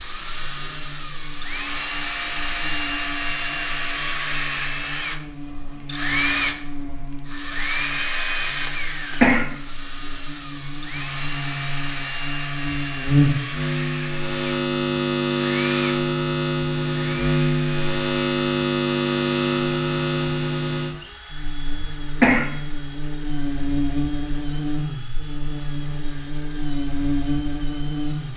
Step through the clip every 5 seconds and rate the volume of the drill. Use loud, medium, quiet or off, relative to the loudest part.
loud, loud, medium, medium, quiet, quiet.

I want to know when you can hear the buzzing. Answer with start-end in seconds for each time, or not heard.
0.1-28.3.